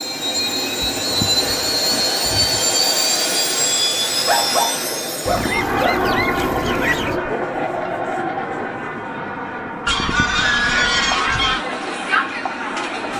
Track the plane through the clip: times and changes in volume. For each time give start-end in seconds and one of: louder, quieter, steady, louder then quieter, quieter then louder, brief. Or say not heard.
0.0-13.1 quieter.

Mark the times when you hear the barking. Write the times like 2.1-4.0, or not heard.
4.2-6.1.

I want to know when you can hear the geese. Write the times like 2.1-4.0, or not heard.
0.8-2.8, 5.2-7.2, 9.8-11.7.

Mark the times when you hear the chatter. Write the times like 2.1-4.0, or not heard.
0.0-13.1.